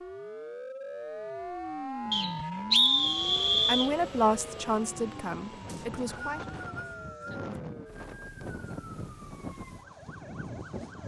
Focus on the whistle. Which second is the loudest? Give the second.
3 s.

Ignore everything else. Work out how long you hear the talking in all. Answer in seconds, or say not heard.
3 s.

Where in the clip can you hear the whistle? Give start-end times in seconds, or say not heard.
2.1-3.9, 5.7-7.5.